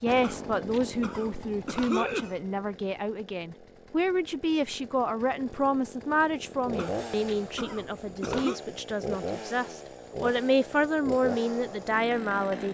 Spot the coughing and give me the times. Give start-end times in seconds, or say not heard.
0.2-2.4, 6.8-8.6.